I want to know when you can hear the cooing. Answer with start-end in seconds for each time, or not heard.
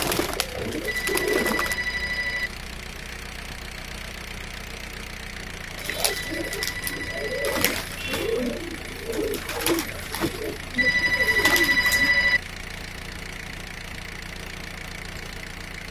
0.0-1.8, 5.8-12.2.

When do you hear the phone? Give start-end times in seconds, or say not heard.
0.8-2.5, 6.2-7.5, 10.8-12.4.